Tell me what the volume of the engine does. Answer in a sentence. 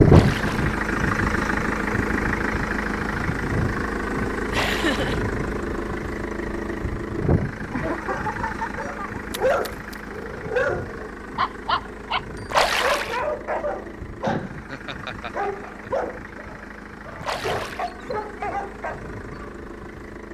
The volume of the engine goes down.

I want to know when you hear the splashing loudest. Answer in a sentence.
The loudest moment of the splashing is at 13 seconds.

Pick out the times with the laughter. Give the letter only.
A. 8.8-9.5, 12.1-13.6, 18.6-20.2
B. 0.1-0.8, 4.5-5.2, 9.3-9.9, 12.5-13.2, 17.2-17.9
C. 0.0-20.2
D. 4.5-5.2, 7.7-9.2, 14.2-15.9
D.